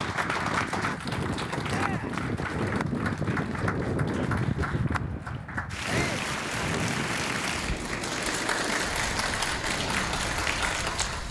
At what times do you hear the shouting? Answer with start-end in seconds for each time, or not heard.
1.6-2.1, 5.8-6.2.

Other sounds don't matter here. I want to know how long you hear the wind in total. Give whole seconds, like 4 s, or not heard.
11 s.